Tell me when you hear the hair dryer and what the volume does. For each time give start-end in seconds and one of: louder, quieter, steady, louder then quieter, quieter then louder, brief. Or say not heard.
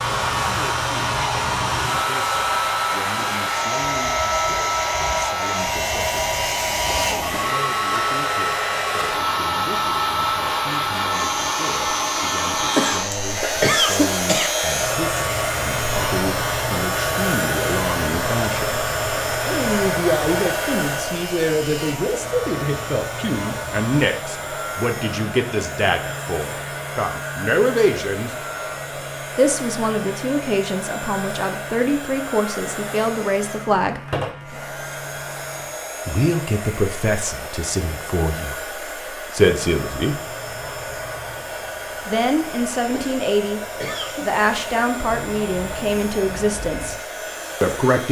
0.0-48.0 quieter.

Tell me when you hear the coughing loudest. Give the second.
14 s.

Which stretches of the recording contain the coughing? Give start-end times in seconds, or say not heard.
12.8-14.6, 42.9-44.2.